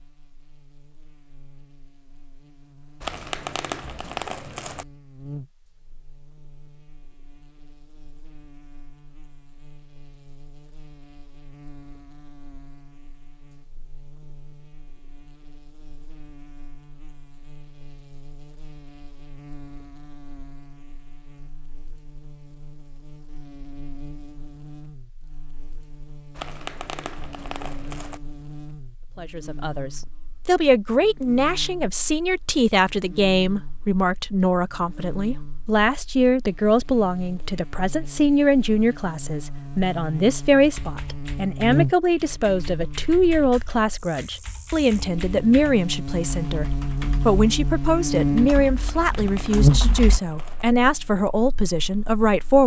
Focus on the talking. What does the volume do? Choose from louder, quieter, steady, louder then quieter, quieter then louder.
steady.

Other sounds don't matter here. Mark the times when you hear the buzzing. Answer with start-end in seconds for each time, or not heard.
0.0-52.6.